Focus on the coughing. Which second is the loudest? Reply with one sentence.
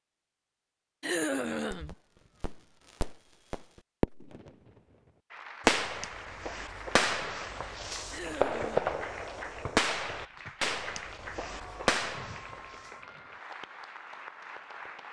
The loudest moment of the coughing is at 1 second.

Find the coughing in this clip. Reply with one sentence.
The coughing can be heard from 1.0 to 1.9 s and from 8.1 to 9.1 s.